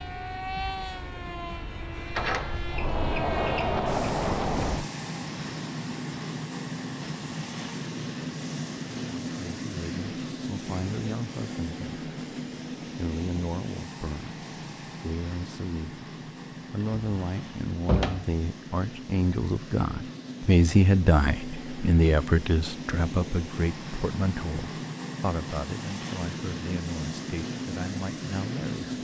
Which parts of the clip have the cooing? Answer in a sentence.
The cooing can't be heard in this clip.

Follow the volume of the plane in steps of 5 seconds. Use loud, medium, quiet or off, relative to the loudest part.
loud, loud, loud, medium, loud, loud.